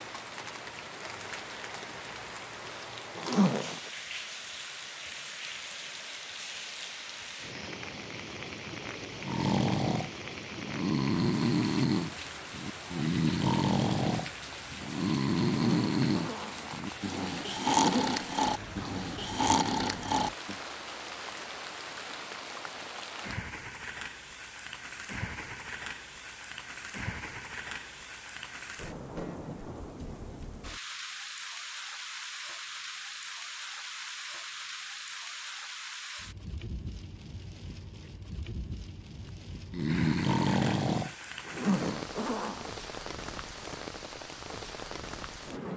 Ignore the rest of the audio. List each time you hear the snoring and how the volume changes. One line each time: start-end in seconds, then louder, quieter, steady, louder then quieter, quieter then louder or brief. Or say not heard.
9.2-20.6 steady
39.2-42.0 brief.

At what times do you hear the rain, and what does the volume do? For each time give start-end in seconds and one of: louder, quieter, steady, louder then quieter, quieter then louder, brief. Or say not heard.
0.0-45.7 steady.